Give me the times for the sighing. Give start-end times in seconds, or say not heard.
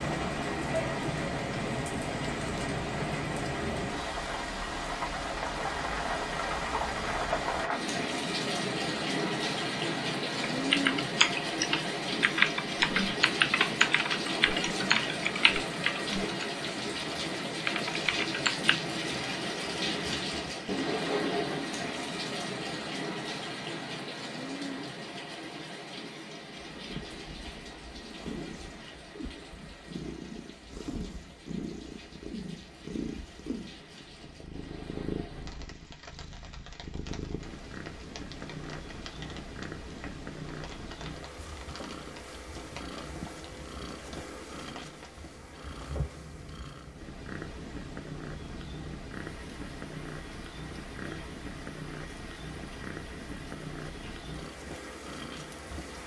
not heard.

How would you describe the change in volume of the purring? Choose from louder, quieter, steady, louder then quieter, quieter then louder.
steady.